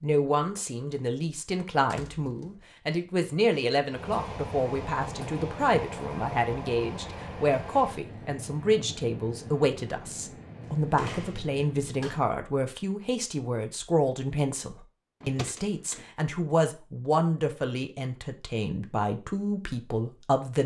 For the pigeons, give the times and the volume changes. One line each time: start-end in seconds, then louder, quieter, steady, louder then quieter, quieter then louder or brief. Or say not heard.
not heard.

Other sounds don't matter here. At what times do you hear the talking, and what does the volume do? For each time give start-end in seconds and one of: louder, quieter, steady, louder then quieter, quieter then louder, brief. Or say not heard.
0.0-20.6 steady.